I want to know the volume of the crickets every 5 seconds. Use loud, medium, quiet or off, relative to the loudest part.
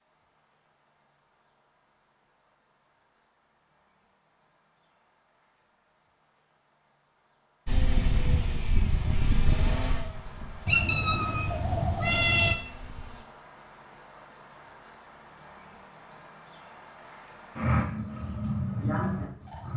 quiet, quiet, medium, loud.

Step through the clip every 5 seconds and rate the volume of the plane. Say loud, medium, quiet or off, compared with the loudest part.
off, loud, quiet, off.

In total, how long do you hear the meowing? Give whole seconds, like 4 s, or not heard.
2 s.